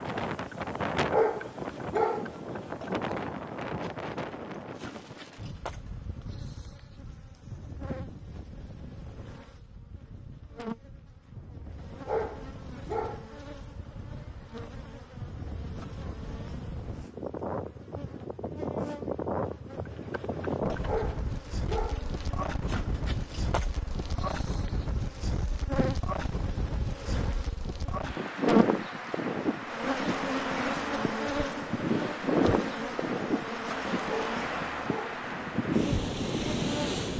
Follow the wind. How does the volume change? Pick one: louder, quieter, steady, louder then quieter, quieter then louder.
quieter then louder.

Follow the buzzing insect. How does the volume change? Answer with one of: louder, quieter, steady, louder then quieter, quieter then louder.
louder.